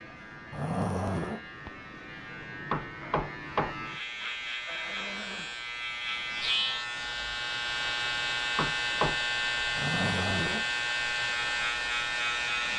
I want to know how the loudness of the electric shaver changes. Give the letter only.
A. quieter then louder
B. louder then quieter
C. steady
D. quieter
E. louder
E.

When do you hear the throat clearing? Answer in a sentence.
You can hear the throat clearing from 0.5 to 1.4 s, from 4.7 to 5.5 s and from 9.8 to 10.7 s.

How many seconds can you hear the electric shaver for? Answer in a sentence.
The electric shaver can be heard for 13 seconds in total.